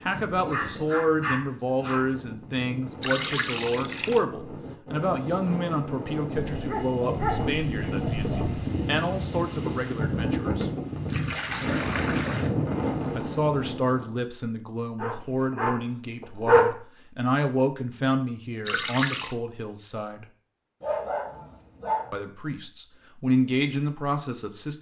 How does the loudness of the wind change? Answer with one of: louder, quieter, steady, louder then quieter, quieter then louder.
louder.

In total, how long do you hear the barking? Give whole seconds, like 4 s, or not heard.
7 s.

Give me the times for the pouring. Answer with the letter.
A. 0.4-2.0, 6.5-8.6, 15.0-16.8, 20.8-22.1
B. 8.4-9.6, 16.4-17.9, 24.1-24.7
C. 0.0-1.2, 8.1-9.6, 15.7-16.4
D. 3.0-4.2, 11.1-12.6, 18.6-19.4
D.